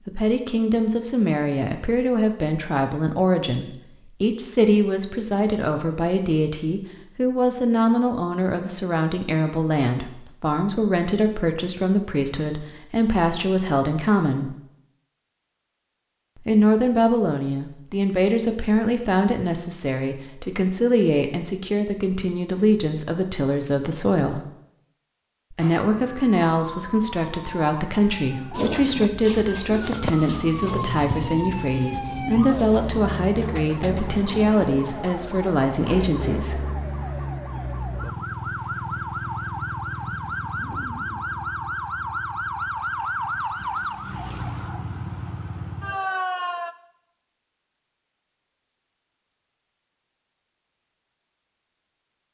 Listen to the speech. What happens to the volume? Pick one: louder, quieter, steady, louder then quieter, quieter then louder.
steady.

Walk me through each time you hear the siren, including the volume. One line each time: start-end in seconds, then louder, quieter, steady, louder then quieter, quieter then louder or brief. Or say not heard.
25.6-46.8 louder.